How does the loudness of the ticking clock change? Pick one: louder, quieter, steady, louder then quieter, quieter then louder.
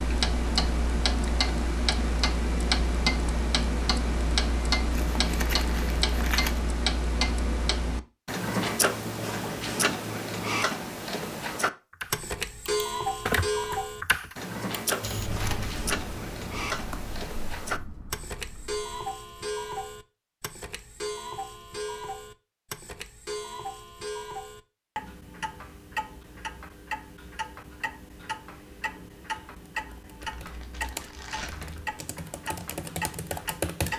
quieter.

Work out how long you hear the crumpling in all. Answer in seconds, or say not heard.
4 s.